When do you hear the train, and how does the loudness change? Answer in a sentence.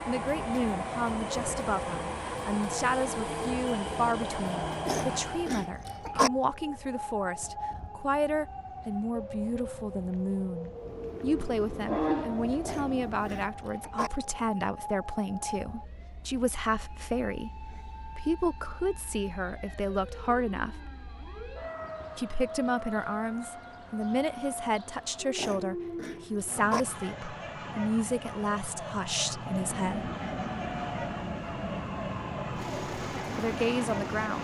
The train can be heard from 0.0 to 5.7 s, at a steady volume; briefly from 10.7 to 13.5 s; and from 29.4 to 34.4 s, at a steady volume.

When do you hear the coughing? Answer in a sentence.
The coughing can be heard from 4.8 to 6.3 s, from 12.7 to 14.1 s and from 25.4 to 26.9 s.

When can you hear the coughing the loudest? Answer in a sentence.
The volume of the coughing peaks at 6 seconds.